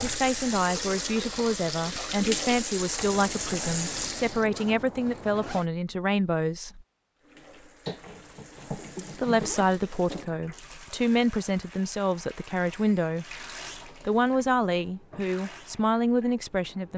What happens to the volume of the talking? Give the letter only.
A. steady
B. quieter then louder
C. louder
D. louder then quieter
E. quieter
A.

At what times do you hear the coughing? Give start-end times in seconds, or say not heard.
7.8-9.5.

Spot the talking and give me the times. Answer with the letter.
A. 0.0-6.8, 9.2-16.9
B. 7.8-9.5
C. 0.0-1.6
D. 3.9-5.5
A.